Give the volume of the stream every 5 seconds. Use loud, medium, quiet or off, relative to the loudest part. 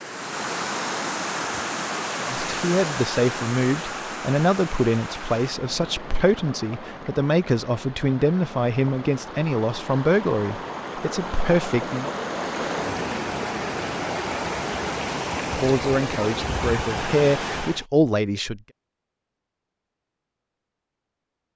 loud, medium, loud, loud, off.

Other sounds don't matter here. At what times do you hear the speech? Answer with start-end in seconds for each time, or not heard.
2.2-12.2, 15.5-18.6.